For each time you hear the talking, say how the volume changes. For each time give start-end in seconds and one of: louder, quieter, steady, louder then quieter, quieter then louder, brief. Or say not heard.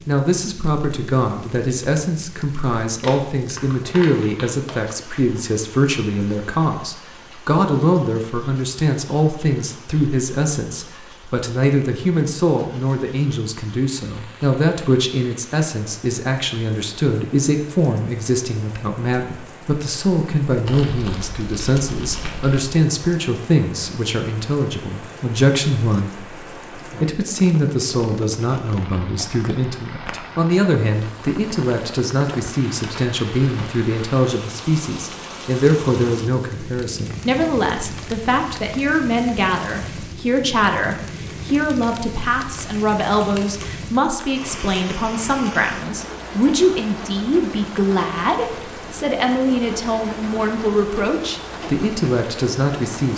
0.1-53.1 steady.